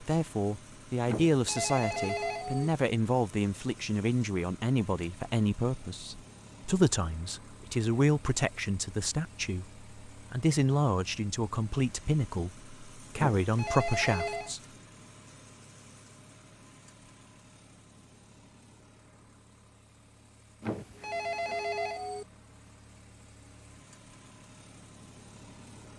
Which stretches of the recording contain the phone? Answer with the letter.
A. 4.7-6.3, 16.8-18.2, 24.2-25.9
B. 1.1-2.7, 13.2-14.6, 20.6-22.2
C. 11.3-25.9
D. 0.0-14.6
B.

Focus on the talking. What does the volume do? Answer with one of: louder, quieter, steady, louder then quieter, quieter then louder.
steady.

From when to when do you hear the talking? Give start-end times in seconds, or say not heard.
0.0-14.6.